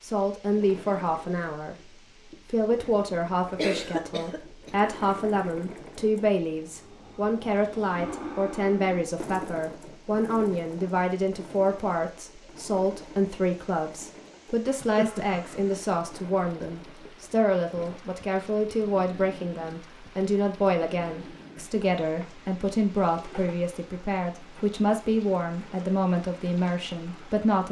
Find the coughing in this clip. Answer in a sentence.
You can hear the coughing from 3.5 to 4.8 s and from 14.7 to 15.8 s.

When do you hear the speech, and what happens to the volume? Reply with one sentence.
You can hear the speech briefly from 0.0 to 1.8 s; and from 2.5 to 27.6 s, at a steady volume.